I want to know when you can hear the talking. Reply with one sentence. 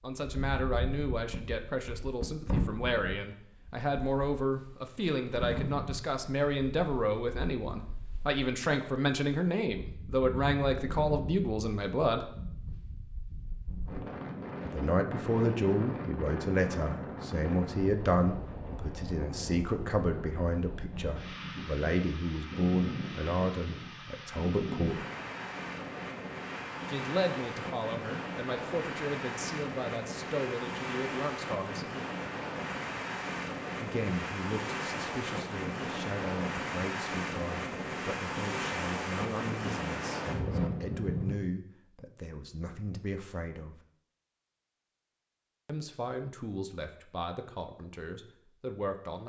The talking can be heard from 0.0 to 12.3 s, from 14.7 to 25.1 s, from 26.9 to 31.9 s, from 33.8 to 43.8 s and from 45.6 to 49.2 s.